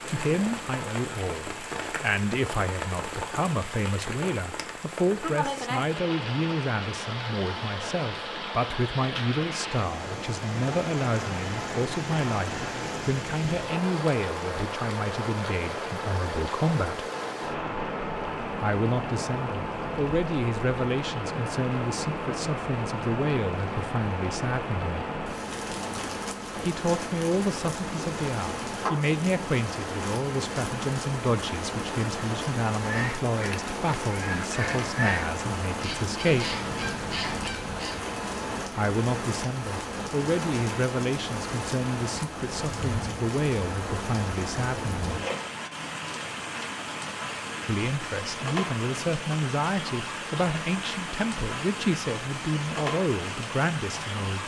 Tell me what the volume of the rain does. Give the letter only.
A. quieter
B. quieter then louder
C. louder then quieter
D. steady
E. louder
D.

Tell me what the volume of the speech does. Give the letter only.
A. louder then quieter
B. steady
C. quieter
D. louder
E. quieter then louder
B.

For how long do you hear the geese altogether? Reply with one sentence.
You can hear the geese for 5 seconds altogether.